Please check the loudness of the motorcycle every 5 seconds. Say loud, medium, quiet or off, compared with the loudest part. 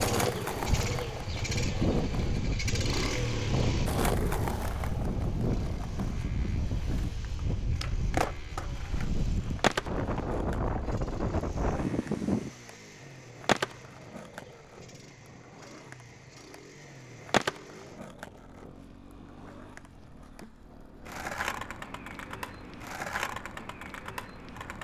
loud, quiet, quiet, quiet, quiet.